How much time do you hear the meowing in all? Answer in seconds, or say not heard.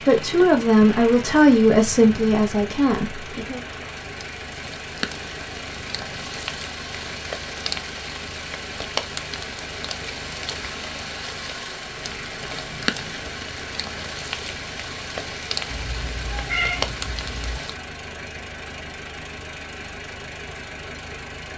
2 s.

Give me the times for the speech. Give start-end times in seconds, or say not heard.
0.0-3.6.